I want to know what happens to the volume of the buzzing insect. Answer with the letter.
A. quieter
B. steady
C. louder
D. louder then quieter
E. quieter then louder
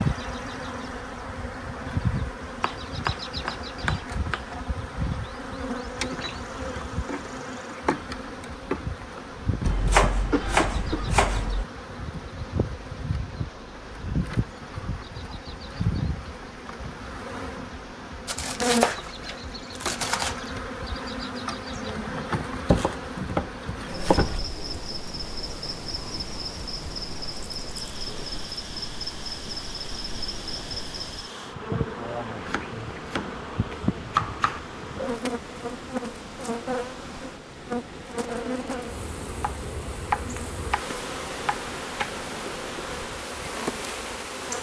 B.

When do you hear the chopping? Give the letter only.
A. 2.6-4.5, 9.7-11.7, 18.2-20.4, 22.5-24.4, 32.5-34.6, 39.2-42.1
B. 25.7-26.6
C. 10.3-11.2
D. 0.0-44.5
A.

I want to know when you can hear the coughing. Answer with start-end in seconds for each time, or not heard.
10.3-11.2.